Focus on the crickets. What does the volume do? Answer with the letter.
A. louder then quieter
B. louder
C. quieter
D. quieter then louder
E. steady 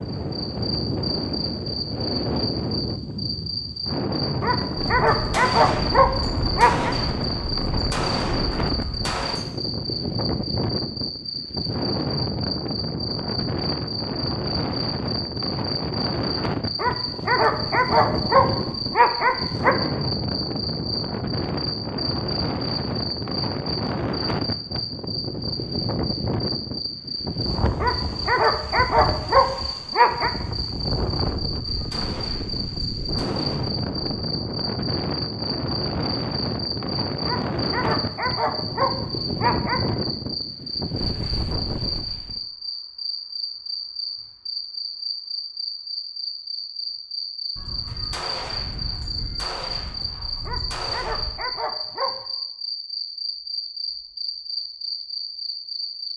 E.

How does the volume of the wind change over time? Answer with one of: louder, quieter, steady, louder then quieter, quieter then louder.
steady.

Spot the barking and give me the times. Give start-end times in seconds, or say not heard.
4.4-7.0, 16.8-19.8, 27.8-30.3, 37.2-39.9, 50.5-52.2.